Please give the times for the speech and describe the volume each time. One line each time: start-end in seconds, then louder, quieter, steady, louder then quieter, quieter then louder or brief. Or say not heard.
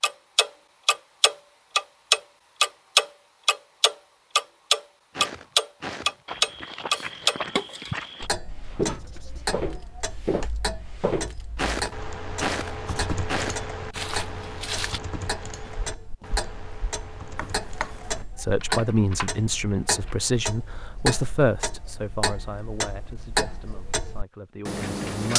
18.4-25.3 quieter.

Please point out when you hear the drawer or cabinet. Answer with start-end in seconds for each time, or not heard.
17.4-18.2.